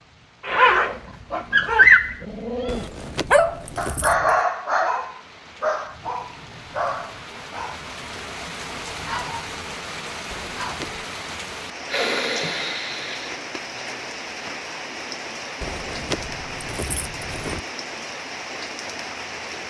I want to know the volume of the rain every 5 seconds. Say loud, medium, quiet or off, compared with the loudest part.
quiet, loud, loud, loud.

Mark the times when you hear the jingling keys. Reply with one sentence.
The jingling keys can be heard from 2.6 to 4.5 s, from 10.3 to 11.1 s and from 15.6 to 17.6 s.